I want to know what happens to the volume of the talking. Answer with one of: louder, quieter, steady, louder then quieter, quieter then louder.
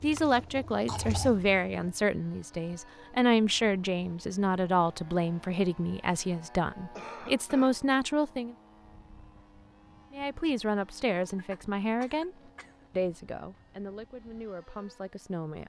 quieter.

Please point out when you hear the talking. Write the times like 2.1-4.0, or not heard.
0.0-8.6, 10.1-15.6.